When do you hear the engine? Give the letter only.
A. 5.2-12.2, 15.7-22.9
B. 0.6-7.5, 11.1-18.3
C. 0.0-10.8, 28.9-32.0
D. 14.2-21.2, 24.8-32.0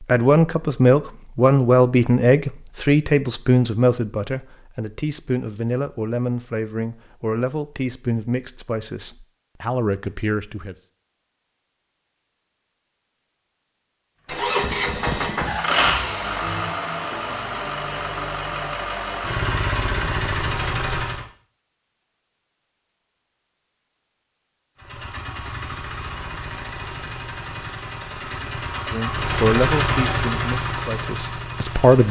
D.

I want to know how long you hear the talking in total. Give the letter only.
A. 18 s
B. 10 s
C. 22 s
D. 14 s
D.